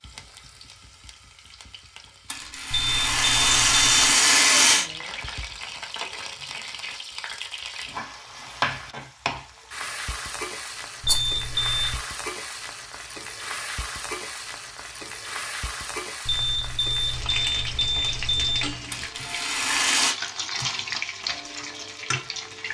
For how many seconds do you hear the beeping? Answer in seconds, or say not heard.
5 s.